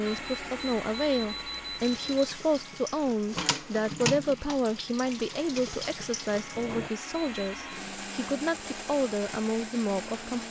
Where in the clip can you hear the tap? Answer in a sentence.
The tap can be heard from 1.8 to 6.9 s.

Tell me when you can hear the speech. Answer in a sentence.
The speech can be heard from 0.0 to 10.4 s.